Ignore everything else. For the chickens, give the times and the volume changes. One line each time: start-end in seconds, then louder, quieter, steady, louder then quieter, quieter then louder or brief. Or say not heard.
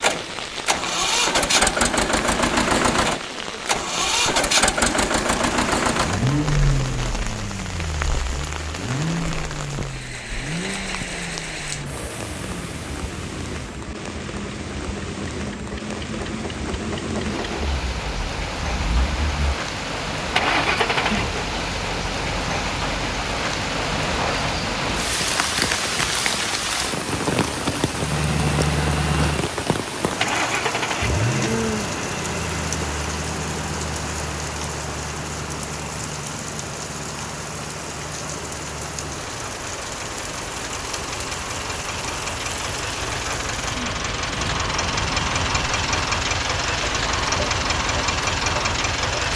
not heard.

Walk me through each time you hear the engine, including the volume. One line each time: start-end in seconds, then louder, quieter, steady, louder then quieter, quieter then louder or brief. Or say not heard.
0.0-21.4 quieter then louder
27.9-49.3 quieter then louder.